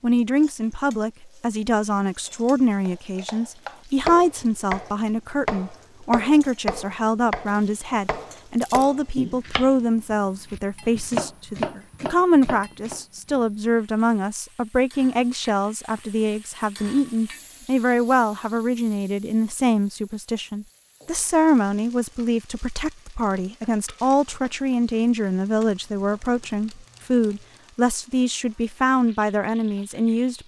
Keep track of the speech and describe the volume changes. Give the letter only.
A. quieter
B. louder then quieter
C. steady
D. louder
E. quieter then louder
C.